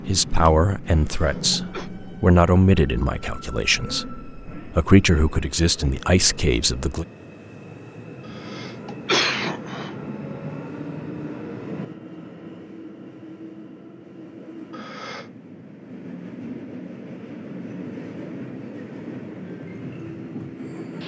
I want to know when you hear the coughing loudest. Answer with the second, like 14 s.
9 s.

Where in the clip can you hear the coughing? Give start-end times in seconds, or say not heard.
1.0-1.9, 8.3-9.9, 14.7-15.3.